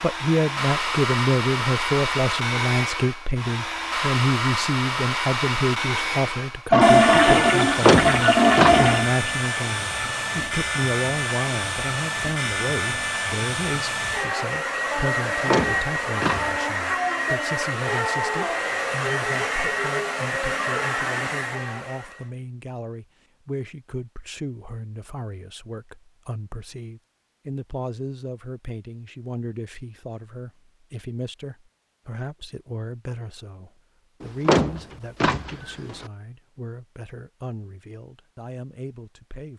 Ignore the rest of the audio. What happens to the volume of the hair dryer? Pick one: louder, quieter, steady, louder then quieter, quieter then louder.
steady.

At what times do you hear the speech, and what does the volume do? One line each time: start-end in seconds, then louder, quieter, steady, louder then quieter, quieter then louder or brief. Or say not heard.
0.0-39.5 quieter.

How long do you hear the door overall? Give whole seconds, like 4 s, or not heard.
4 s.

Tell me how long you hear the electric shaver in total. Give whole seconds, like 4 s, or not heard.
not heard.